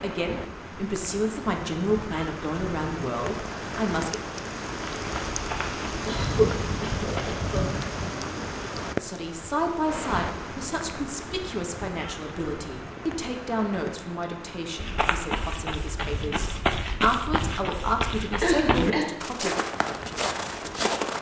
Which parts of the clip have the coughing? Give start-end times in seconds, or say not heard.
6.0-8.1, 18.4-19.1.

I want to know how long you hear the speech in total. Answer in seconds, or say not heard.
15 s.